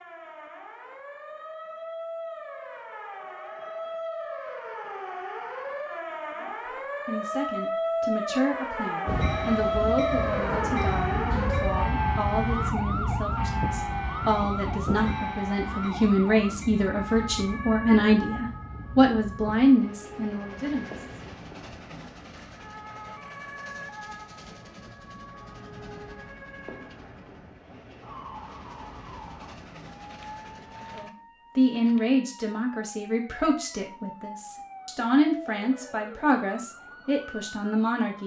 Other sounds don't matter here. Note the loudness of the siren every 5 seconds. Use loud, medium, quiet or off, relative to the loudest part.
medium, loud, loud, medium, quiet, quiet, quiet, quiet.